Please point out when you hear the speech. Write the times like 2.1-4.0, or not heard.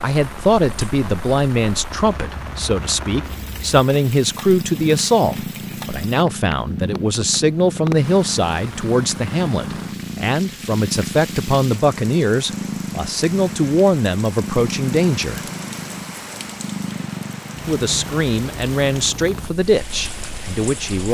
0.0-15.4, 17.6-21.0.